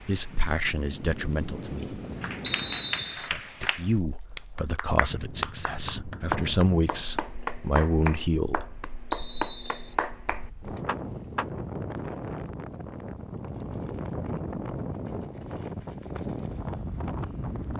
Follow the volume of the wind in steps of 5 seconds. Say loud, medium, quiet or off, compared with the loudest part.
medium, medium, loud, loud.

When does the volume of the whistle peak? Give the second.
3 s.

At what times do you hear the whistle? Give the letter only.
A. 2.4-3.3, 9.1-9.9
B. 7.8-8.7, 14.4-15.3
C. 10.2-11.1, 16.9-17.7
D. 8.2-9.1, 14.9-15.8
A.